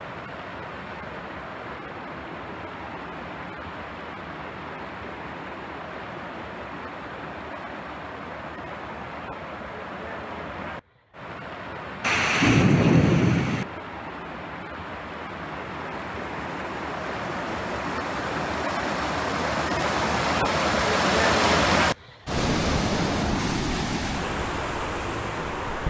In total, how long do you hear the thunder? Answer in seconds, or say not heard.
2 s.